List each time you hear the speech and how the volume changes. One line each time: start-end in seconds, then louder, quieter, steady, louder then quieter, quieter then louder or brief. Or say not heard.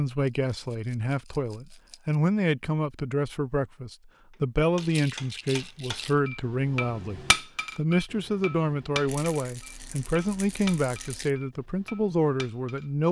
0.0-13.0 steady.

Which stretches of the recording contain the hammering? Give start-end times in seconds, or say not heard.
4.3-12.8.